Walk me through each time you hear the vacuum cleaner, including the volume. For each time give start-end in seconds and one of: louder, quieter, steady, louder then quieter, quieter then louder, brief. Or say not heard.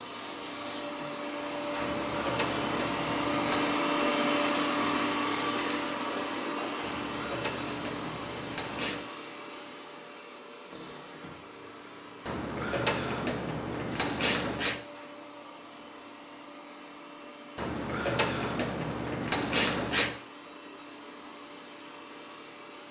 0.0-22.8 quieter.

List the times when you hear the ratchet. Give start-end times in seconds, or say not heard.
1.8-3.8, 6.8-9.1, 12.2-14.8, 17.6-20.2.